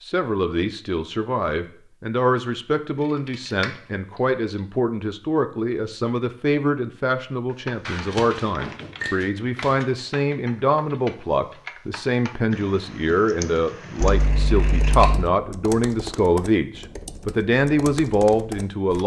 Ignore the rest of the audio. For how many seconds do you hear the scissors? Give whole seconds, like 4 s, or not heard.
4 s.